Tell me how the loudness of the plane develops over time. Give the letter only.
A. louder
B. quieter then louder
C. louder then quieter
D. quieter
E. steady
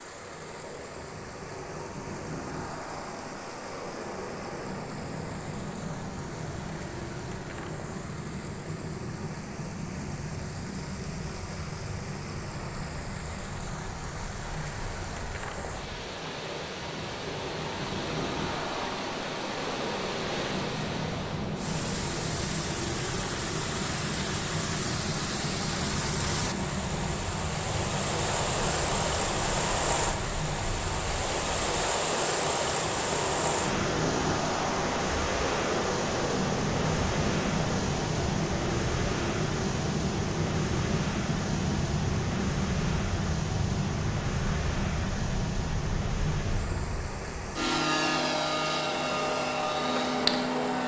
A.